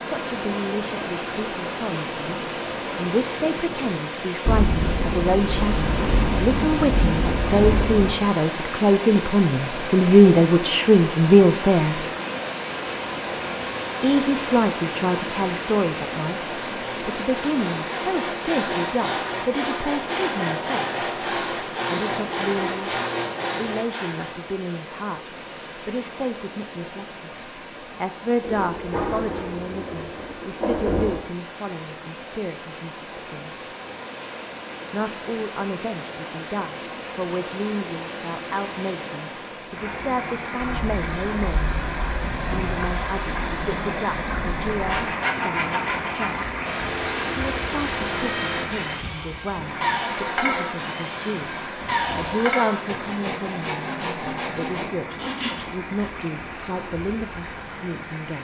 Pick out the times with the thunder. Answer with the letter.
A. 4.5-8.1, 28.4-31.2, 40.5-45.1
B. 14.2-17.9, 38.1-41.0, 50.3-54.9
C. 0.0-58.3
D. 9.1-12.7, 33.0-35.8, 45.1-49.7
A.